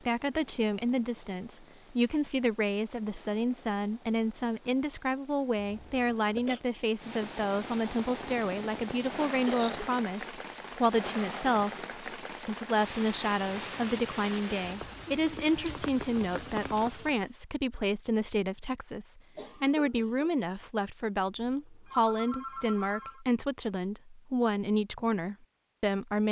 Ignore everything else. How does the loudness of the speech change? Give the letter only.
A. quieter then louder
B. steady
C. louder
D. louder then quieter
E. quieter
B.